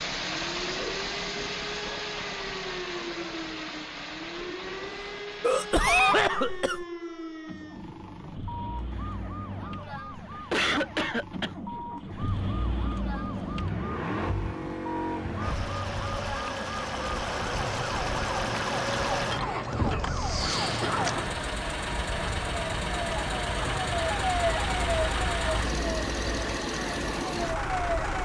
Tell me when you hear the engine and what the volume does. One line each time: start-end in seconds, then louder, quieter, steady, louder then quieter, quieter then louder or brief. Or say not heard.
0.0-28.2 quieter then louder.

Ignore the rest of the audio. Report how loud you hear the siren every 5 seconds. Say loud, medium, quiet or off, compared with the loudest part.
medium, medium, medium, loud, loud, loud.